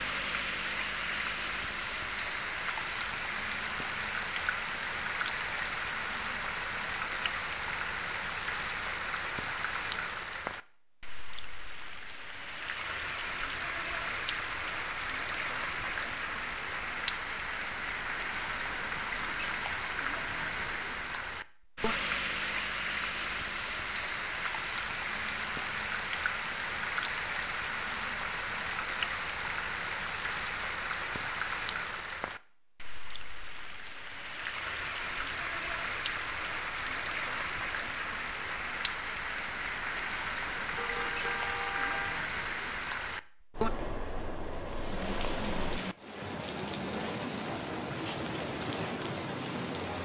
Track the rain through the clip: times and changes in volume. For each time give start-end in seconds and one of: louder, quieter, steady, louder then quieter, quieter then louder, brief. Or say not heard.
0.0-50.0 steady.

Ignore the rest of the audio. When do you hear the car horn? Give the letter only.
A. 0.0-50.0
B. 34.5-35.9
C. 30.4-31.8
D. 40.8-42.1
D.